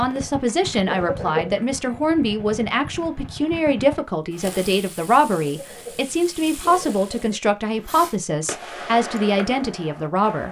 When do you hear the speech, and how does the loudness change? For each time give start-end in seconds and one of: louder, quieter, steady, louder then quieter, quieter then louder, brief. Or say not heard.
0.0-10.4 steady.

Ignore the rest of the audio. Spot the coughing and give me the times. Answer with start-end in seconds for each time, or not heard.
0.8-1.6, 5.4-7.3.